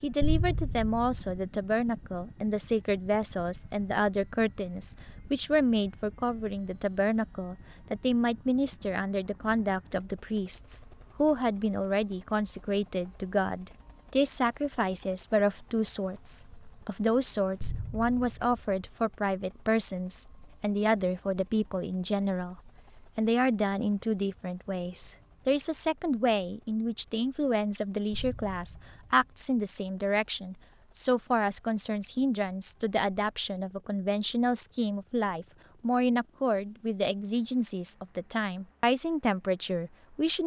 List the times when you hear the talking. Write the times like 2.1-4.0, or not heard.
0.0-40.4.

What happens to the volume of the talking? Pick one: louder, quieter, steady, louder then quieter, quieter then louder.
steady.